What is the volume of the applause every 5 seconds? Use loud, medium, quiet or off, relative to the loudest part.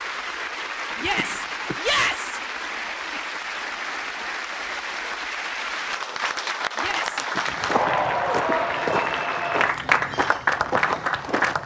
medium, loud, loud.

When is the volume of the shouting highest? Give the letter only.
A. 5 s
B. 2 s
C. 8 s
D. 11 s
B.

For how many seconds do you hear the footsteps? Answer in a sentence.
The footsteps can be heard for 4 seconds in total.